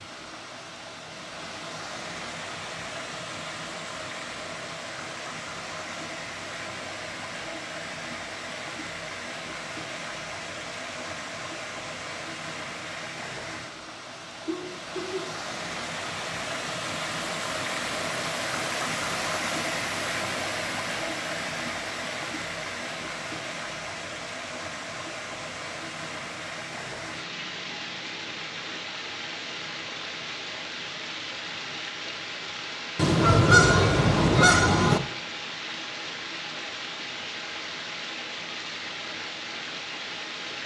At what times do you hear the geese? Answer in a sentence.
You can hear the geese from 33.0 to 35.0 s.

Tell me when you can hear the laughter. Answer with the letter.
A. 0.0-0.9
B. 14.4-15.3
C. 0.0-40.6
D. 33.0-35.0
B.